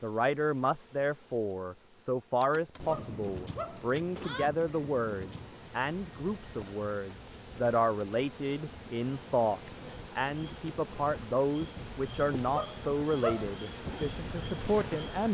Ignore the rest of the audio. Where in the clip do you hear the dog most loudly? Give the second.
13 s.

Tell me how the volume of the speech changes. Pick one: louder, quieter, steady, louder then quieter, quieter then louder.
steady.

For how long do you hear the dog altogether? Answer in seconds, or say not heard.
3 s.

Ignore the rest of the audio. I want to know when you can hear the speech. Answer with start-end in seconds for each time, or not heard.
0.0-15.3.